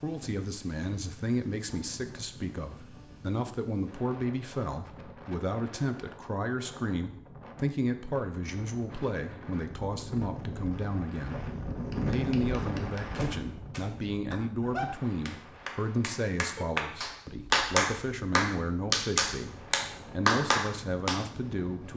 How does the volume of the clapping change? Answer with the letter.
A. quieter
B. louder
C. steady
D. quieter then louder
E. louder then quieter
B.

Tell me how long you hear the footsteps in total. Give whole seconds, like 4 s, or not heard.
not heard.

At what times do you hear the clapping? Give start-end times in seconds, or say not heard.
11.8-21.2.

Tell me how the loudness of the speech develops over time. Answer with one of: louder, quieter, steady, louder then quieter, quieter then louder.
steady.